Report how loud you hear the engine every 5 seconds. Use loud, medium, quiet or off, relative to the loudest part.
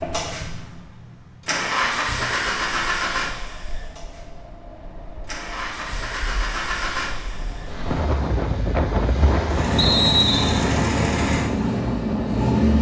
medium, medium, loud.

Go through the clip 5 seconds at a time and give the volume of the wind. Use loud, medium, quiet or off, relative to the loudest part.
quiet, loud, loud.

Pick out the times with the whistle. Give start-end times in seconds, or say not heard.
9.8-10.7.